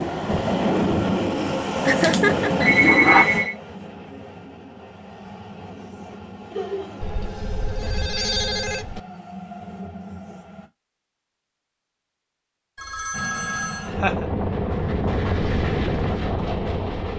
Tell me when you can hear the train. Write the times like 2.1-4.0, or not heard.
0.0-10.7, 13.1-17.1.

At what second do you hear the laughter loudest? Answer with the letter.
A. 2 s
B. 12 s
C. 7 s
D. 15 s
A.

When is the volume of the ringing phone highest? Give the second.
3 s.